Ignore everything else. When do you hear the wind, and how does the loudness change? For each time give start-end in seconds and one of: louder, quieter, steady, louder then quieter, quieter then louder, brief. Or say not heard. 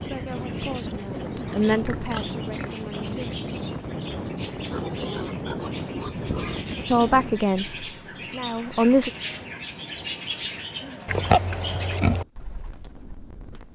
0.0-13.7 quieter.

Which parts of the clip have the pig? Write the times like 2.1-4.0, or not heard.
1.4-2.9, 4.7-6.7, 11.1-12.2.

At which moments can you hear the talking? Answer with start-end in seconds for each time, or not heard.
0.0-3.4, 6.9-9.1.